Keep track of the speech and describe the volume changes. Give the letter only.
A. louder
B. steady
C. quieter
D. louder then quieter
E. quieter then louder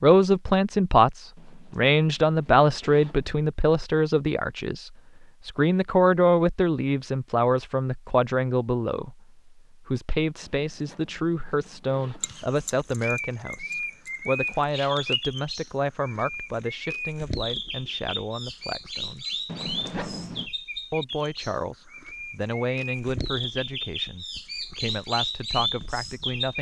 C.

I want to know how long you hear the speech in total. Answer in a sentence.
You can hear the speech for 24 seconds altogether.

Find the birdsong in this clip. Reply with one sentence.
The birdsong can be heard from 12.2 to 26.5 s.